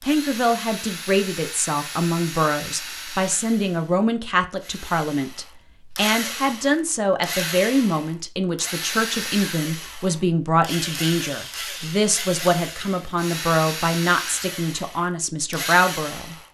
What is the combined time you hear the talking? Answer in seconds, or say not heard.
16 s.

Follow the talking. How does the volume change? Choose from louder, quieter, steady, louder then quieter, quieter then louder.
steady.